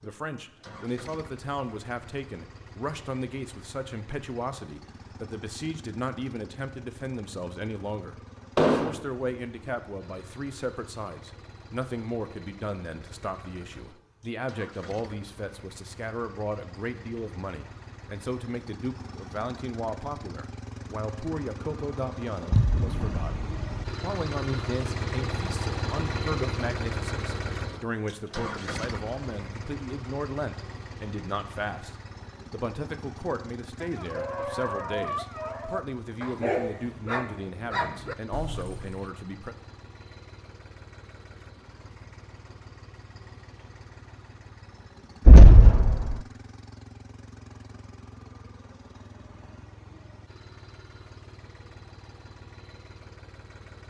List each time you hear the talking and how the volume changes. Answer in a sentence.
You can hear the talking from 0.0 to 39.5 s, at a steady volume.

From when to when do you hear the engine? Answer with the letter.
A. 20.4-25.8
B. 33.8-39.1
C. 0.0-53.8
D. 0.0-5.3
C.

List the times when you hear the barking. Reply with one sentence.
You can hear the barking from 33.8 to 39.1 s.